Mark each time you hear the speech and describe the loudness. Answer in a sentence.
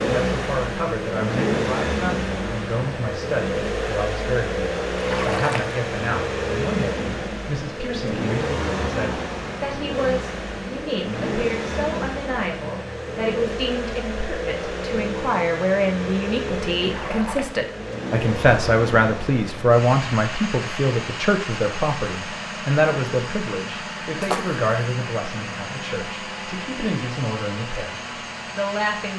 The speech can be heard from 0.0 to 29.1 s, getting louder then quieter.